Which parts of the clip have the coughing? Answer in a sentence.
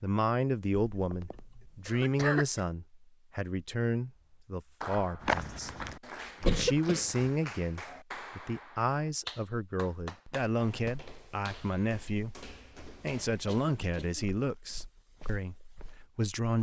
The coughing can be heard from 0.9 to 2.6 s, from 6.5 to 7.2 s and from 13.4 to 14.2 s.